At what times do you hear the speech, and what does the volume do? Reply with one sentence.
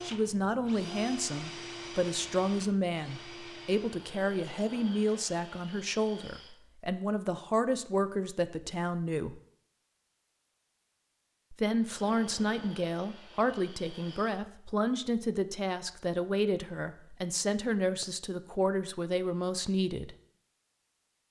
You can hear the speech from 0.0 to 9.4 s, at a steady volume; and from 11.5 to 20.1 s, at a steady volume.